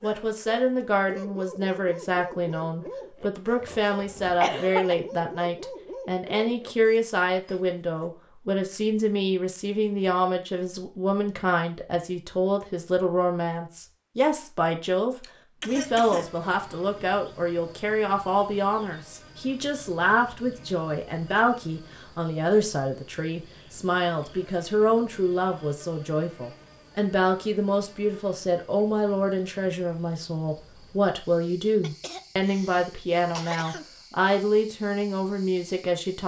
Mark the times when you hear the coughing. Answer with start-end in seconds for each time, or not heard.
3.6-5.0, 15.2-16.3, 31.8-33.9.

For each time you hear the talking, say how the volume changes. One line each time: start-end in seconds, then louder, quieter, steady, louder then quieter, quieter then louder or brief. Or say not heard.
0.0-36.2 steady.